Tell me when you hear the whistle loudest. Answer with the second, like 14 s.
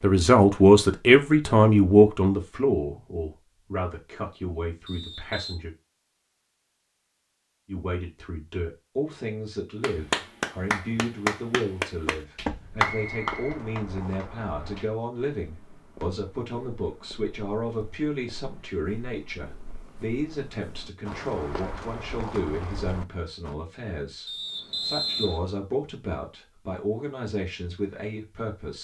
25 s.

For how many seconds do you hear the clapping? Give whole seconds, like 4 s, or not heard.
5 s.